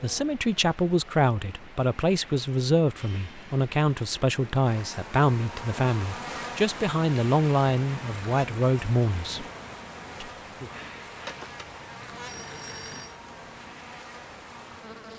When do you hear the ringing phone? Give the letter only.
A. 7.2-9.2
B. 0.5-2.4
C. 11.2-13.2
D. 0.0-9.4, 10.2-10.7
C.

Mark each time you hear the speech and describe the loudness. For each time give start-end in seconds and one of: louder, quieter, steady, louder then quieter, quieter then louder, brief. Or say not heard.
0.0-9.4 steady
10.2-10.7 brief.